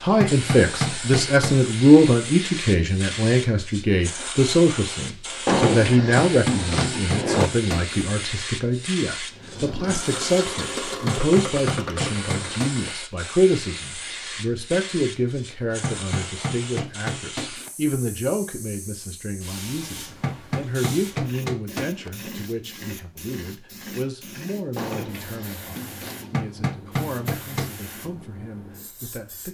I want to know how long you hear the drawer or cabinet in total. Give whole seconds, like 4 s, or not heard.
4 s.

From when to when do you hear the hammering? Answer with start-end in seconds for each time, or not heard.
0.1-1.6, 6.2-8.1, 10.9-12.9, 15.7-17.7, 20.1-22.1, 26.2-27.7.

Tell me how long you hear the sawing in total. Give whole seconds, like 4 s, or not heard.
not heard.